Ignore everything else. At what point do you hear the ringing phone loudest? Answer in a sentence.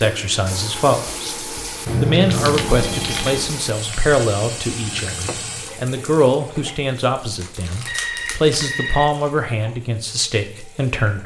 The volume of the ringing phone peaks at 2 seconds.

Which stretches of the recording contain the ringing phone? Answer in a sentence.
You can hear the ringing phone from 1.9 to 3.5 s and from 7.8 to 9.2 s.